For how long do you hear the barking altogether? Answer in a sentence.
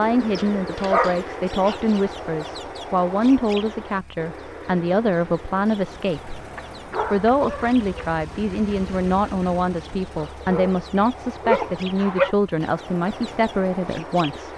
You can hear the barking for 5 seconds altogether.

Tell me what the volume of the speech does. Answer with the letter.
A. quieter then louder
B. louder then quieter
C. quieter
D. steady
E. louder
D.